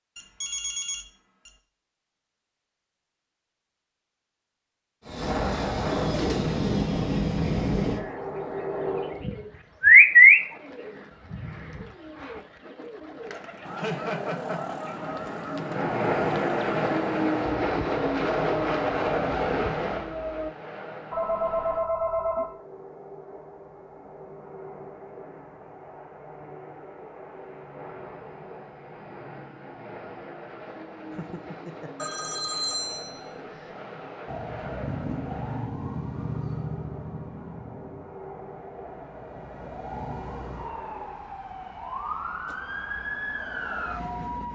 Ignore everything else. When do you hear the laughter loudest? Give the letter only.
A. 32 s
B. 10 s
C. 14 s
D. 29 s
C.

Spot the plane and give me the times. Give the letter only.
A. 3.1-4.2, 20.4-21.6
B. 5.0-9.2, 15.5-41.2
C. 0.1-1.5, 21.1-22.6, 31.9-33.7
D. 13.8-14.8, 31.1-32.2
B.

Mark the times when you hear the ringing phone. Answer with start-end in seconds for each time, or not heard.
0.1-1.5, 21.1-22.6, 31.9-33.7.